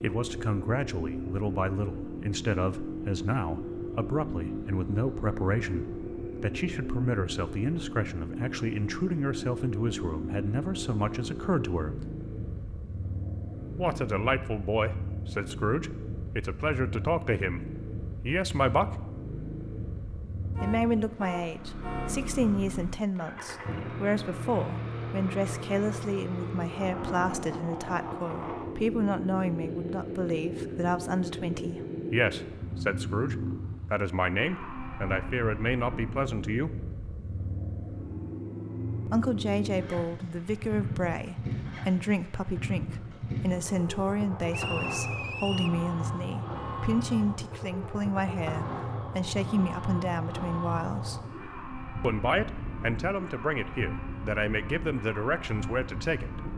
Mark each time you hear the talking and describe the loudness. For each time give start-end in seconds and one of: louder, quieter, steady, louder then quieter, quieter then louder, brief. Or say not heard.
0.0-12.1 steady
13.8-19.0 steady
20.6-36.8 steady
39.0-51.2 steady
52.0-56.4 steady.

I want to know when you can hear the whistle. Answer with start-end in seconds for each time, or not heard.
44.5-45.8.